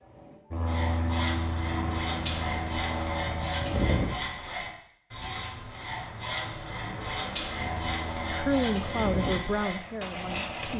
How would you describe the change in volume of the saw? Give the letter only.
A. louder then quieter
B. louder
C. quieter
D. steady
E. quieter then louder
D.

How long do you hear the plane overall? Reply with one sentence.
The plane can be heard for 7 seconds in total.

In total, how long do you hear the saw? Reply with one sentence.
The saw can be heard for 10 seconds in total.